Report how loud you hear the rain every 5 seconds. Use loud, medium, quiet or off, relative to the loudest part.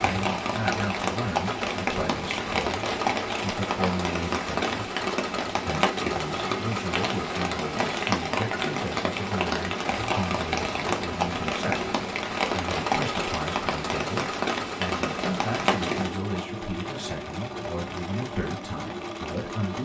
loud, loud, loud, medium.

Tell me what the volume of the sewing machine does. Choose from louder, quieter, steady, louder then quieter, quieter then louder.
steady.